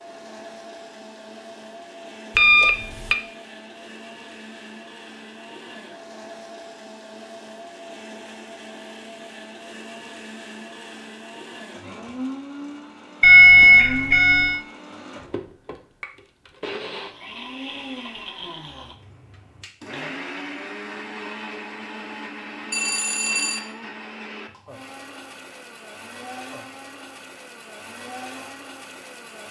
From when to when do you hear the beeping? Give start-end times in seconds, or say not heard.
2.4-3.1, 13.2-14.6, 22.7-23.6.